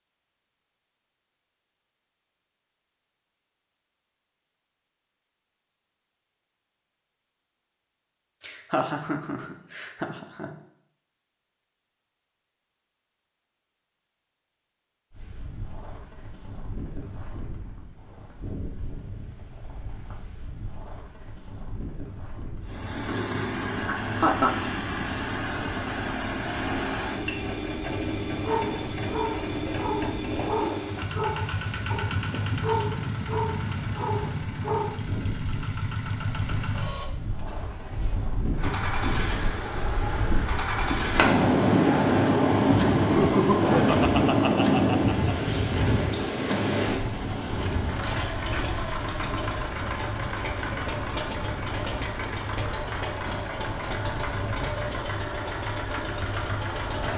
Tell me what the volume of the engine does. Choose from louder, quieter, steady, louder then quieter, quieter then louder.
steady.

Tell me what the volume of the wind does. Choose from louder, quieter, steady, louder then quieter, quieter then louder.
louder then quieter.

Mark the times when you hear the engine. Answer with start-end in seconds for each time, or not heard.
22.6-57.1.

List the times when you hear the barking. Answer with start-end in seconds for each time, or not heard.
28.3-35.0.